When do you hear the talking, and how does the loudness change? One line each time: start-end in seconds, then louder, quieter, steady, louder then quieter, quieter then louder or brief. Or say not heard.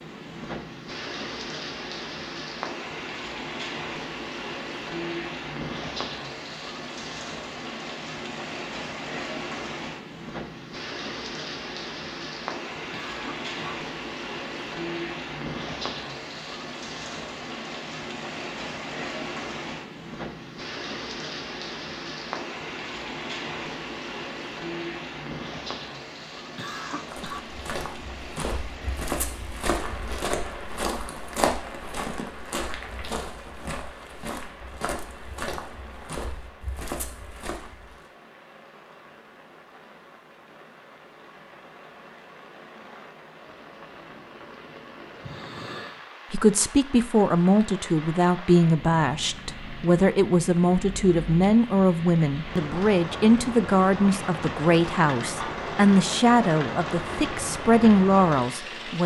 46.3-59.0 steady.